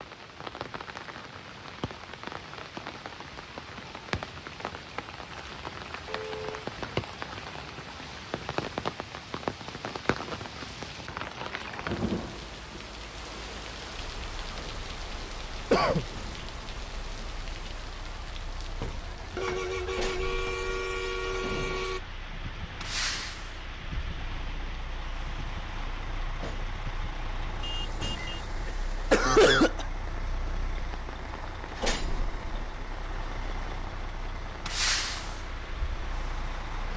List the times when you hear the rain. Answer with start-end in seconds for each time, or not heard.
0.0-36.9.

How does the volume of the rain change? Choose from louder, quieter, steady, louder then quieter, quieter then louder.
quieter.